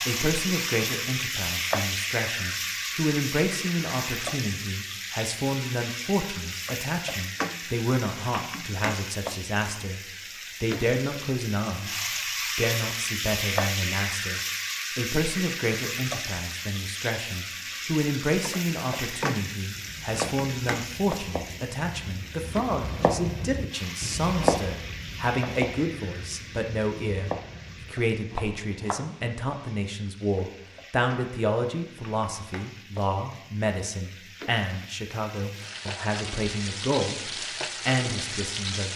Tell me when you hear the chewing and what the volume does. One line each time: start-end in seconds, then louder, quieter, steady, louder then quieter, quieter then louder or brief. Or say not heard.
not heard.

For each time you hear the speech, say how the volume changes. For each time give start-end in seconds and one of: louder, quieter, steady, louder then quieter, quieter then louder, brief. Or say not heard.
0.1-38.9 steady.